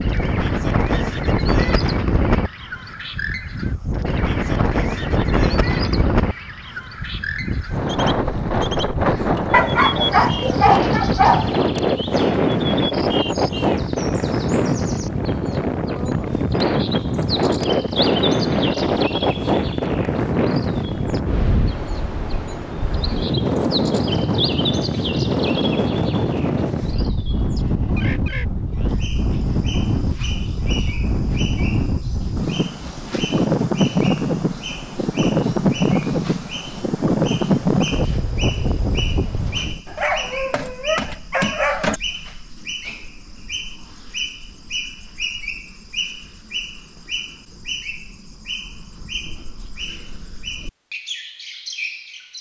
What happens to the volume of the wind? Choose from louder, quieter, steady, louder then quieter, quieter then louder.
steady.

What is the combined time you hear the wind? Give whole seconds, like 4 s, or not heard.
40 s.